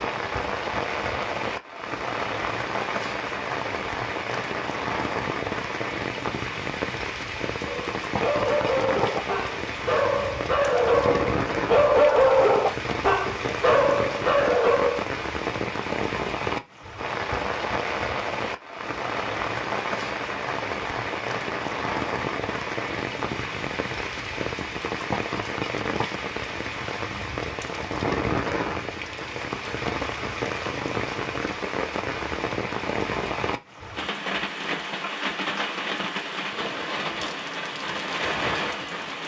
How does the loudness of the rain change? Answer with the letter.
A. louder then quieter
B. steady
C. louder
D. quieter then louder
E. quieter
B.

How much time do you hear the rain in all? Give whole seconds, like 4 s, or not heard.
39 s.